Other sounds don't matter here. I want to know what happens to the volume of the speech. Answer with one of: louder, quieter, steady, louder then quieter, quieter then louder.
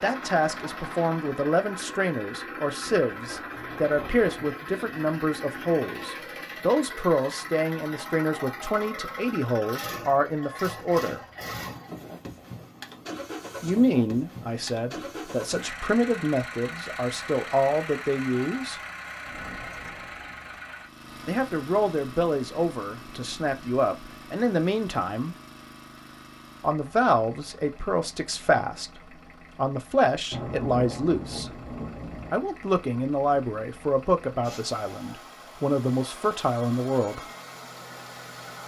steady.